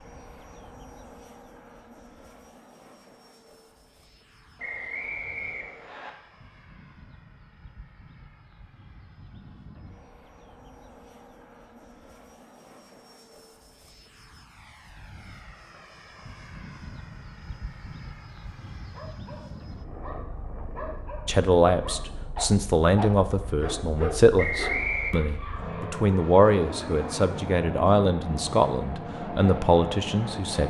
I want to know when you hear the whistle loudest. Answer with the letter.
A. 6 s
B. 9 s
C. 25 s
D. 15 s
C.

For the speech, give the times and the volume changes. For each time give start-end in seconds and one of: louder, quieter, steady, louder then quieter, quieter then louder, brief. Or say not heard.
21.2-30.6 steady.